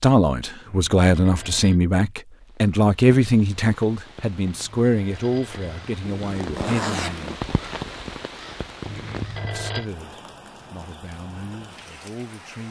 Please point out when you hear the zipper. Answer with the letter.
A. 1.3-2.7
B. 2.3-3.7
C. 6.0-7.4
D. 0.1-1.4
C.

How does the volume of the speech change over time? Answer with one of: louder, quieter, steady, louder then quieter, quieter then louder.
quieter.